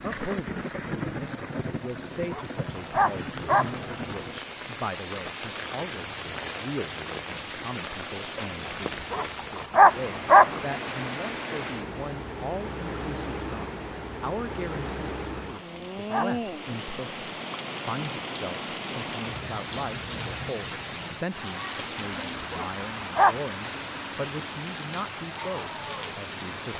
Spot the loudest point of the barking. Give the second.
10 s.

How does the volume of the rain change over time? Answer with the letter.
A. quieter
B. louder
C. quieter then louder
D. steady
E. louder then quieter
D.